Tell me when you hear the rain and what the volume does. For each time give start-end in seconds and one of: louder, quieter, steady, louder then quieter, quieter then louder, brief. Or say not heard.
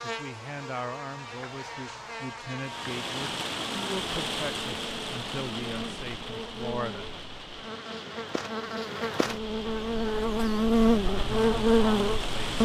2.6-12.6 quieter then louder.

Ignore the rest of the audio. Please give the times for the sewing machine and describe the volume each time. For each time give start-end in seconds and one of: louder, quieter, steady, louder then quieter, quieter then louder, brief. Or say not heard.
not heard.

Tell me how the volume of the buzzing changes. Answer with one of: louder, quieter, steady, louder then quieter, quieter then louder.
louder.